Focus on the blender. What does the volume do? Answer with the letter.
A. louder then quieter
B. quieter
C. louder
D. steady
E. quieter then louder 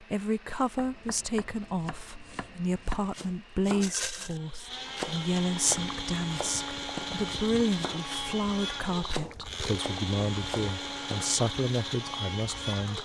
C.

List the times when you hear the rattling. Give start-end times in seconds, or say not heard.
3.8-4.4.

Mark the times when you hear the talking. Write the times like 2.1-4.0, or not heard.
0.0-12.9.